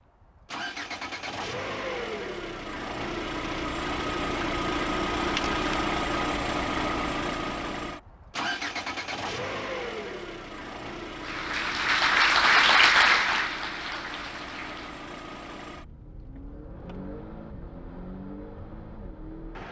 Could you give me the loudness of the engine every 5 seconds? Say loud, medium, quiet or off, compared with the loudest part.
loud, loud, medium, quiet.